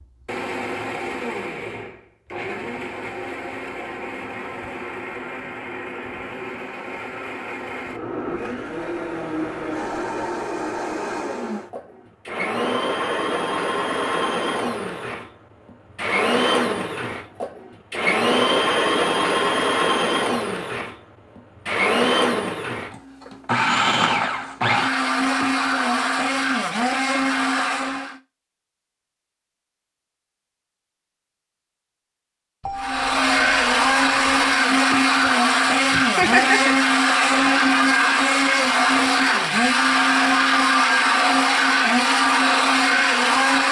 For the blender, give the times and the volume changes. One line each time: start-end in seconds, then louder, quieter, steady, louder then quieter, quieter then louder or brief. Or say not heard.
0.0-28.2 louder
32.8-43.6 steady.